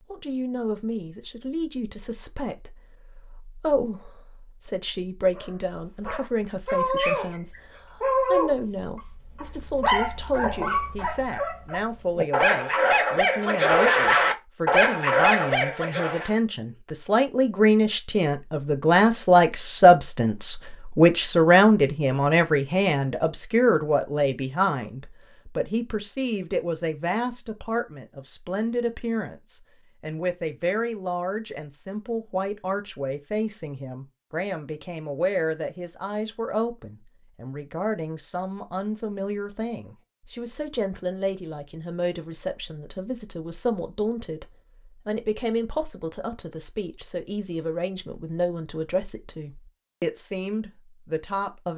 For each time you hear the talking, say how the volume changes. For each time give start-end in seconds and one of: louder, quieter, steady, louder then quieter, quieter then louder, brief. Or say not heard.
0.1-44.5 louder then quieter
45.0-51.7 steady.